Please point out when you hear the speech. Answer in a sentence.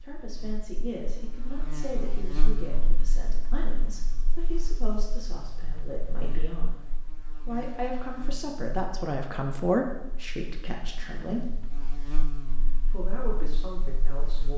The speech can be heard from 0.0 to 6.8 s, from 7.5 to 11.5 s and from 12.8 to 14.5 s.